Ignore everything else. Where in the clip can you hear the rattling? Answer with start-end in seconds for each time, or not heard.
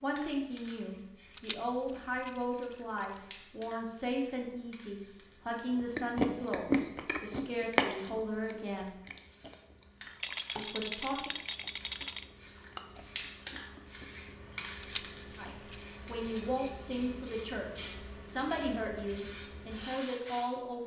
1.3-3.2, 10.2-12.2, 14.8-15.8.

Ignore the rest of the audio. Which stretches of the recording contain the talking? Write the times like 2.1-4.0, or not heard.
0.0-8.9, 10.6-11.3, 15.3-20.8.